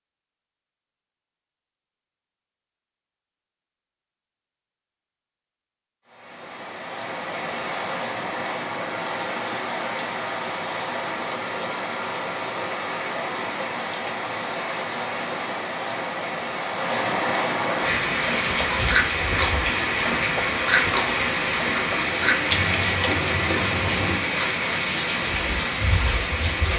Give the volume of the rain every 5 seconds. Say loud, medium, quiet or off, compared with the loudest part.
off, medium, medium, loud, loud, loud.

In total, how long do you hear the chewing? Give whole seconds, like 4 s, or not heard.
6 s.